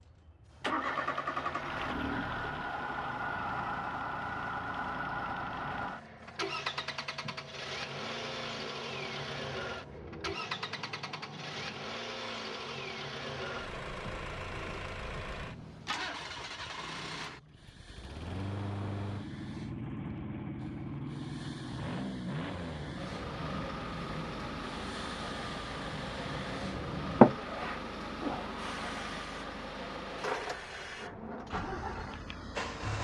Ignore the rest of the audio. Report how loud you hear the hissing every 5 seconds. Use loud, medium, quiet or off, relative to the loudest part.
quiet, quiet, quiet, quiet, quiet, loud, quiet.